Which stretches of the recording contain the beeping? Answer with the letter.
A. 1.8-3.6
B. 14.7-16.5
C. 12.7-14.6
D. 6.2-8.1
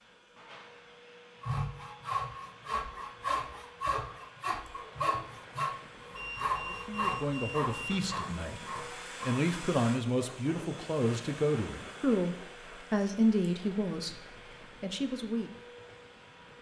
D.